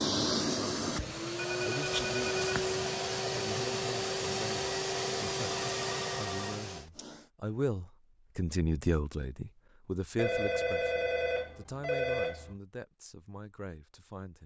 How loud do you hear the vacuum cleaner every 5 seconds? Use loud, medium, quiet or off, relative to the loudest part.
loud, loud, off.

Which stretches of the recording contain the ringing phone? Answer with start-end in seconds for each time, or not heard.
1.4-2.5, 5.5-7.0, 10.2-12.6.